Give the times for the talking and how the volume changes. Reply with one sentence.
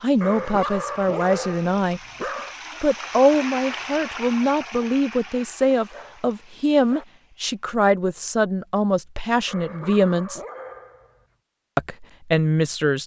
You can hear the talking briefly from 0.0 to 2.0 s; from 2.8 to 10.4 s, at a steady volume; and briefly from 11.8 to 13.0 s.